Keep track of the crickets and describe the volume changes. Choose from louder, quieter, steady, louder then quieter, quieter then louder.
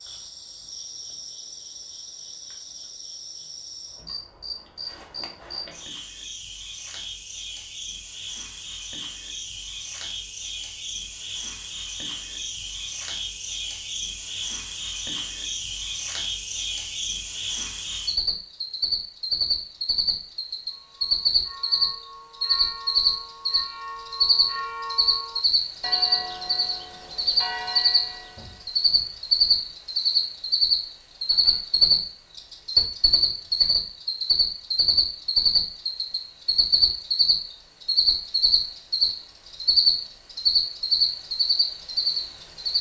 louder.